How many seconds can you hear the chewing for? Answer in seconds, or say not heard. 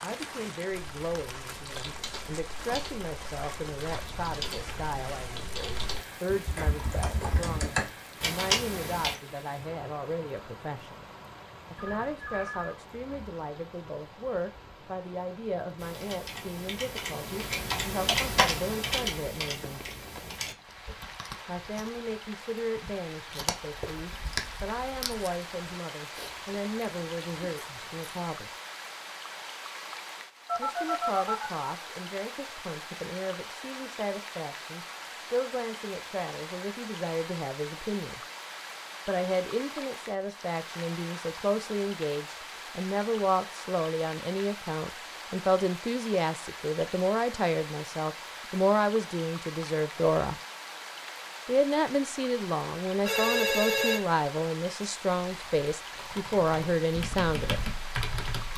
8 s.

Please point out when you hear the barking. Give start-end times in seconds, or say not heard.
not heard.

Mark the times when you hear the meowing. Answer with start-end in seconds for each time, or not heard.
not heard.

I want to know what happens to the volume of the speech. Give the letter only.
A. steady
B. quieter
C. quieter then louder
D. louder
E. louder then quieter
D.